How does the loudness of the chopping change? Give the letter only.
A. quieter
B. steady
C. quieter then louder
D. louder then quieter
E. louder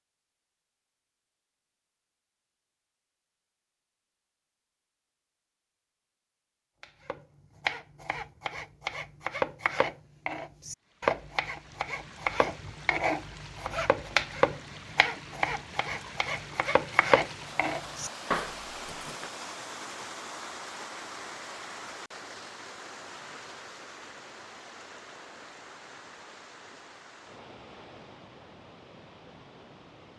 B.